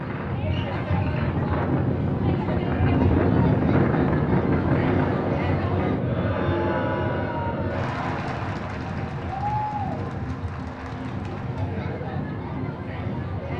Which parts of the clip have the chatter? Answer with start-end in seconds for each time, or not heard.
0.0-13.5.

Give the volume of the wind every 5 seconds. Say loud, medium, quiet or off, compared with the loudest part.
loud, medium, medium.